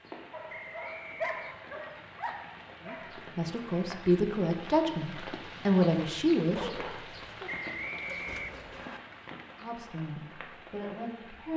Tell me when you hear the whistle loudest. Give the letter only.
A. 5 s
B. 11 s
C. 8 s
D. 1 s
C.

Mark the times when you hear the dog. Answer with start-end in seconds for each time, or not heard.
0.3-3.1, 6.5-8.8.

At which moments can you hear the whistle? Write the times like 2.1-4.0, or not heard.
0.5-1.6, 7.5-9.0.